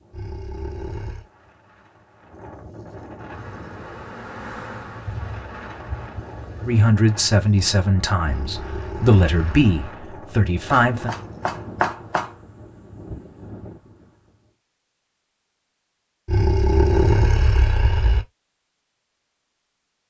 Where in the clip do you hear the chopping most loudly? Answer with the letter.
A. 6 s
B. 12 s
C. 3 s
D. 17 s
B.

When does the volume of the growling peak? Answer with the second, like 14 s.
17 s.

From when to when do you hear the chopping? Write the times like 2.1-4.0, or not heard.
10.7-12.3.